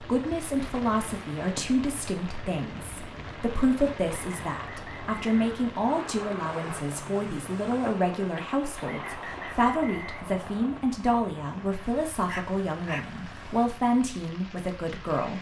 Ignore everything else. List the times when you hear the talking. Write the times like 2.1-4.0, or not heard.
0.0-15.3.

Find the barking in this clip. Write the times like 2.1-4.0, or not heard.
12.2-13.7.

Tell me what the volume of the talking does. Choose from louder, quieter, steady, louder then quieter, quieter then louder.
steady.